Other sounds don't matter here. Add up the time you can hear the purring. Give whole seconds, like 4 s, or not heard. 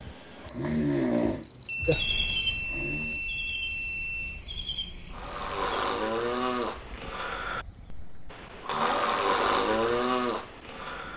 not heard.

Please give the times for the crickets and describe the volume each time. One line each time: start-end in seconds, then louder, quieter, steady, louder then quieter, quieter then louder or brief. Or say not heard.
0.0-11.1 quieter.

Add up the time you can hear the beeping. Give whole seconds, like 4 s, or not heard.
3 s.